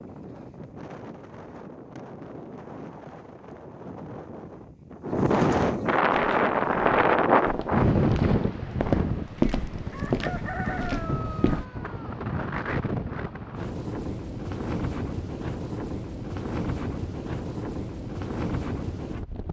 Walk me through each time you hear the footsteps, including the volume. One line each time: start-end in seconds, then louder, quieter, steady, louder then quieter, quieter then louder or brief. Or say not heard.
6.1-11.7 louder then quieter.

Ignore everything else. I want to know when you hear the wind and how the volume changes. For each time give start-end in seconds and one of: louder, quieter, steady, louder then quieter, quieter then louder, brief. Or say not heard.
0.0-19.4 louder then quieter.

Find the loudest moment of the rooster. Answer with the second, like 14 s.
11 s.